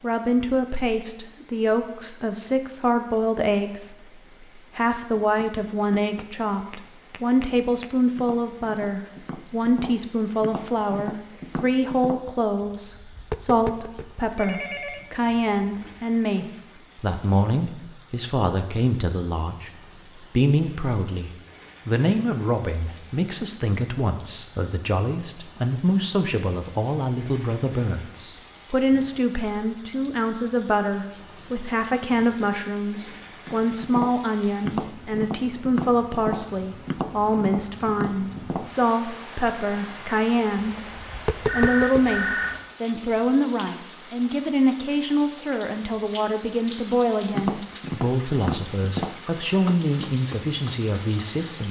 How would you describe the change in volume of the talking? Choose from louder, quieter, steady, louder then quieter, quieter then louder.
steady.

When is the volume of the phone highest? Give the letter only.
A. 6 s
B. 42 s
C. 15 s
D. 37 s
B.